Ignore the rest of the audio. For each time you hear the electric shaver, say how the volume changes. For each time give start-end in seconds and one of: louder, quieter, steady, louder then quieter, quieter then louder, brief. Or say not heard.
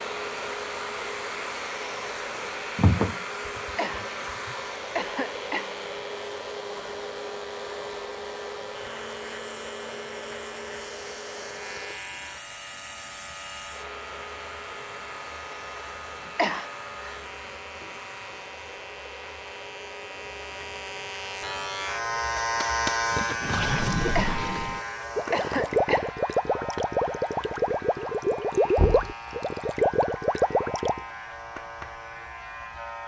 0.0-33.0 louder then quieter.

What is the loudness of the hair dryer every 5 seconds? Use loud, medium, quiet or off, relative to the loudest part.
loud, loud, medium, medium, medium, quiet, quiet.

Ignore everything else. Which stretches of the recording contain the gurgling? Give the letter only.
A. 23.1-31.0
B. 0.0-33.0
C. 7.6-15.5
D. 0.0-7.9
A.